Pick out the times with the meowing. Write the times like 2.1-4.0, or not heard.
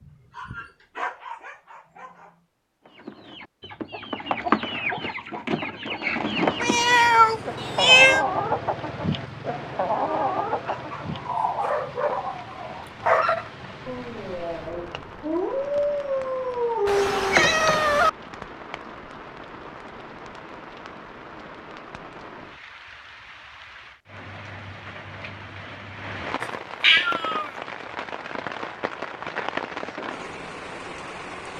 6.6-8.2, 16.9-18.1, 26.8-27.5.